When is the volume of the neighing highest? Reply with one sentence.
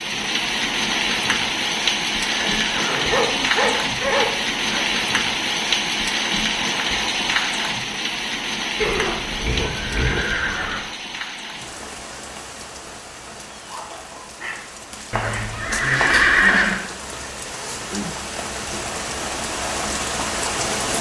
The loudest moment of the neighing is at 16 seconds.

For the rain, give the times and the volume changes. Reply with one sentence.
The rain can be heard from 0.0 to 20.9 s, getting quieter then louder.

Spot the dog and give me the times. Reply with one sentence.
The dog can be heard from 3.0 to 4.8 s and from 13.7 to 15.5 s.